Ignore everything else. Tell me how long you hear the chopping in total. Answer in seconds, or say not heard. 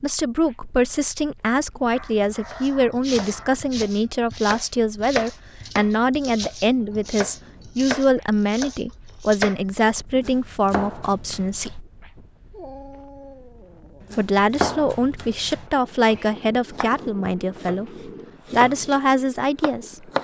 15 s.